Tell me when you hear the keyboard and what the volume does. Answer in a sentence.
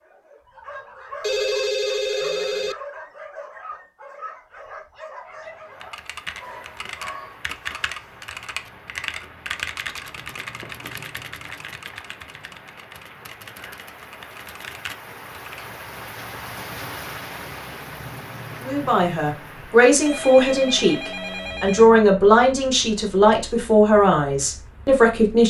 You can hear the keyboard from 5.8 to 15.7 s, getting quieter.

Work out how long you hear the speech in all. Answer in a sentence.
You can hear the speech for 7 seconds altogether.